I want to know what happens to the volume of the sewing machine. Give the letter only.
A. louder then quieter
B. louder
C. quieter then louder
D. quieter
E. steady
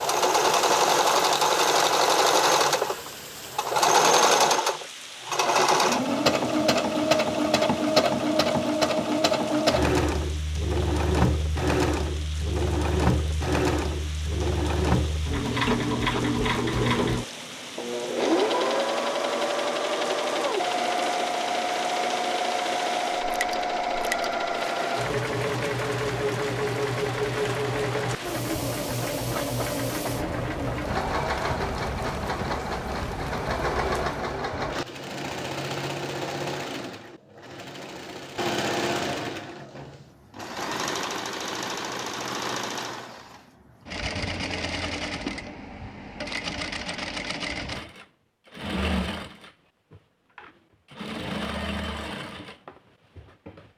D.